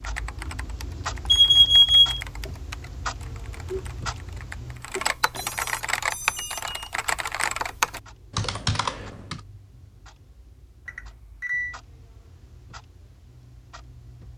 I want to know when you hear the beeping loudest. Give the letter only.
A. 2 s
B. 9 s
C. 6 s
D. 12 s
A.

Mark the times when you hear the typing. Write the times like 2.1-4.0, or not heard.
0.0-9.4.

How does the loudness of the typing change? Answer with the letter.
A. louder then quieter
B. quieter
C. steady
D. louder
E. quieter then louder
D.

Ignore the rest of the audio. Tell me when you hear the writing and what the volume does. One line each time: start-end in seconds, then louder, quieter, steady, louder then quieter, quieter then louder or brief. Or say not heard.
not heard.